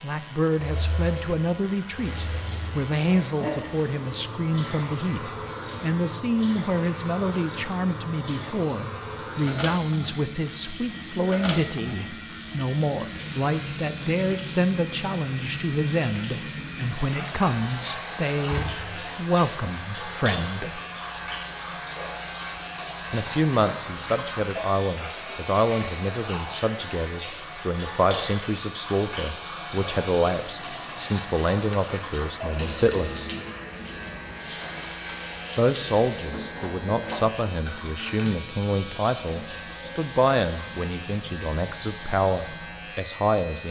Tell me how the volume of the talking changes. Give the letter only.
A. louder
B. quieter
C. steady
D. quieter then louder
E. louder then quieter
C.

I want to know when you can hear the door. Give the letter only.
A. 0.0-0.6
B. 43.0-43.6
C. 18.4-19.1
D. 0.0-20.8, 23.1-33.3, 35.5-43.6
C.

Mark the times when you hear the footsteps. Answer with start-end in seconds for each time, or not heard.
not heard.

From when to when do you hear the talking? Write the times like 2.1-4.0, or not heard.
0.0-20.8, 23.1-33.3, 35.5-43.6.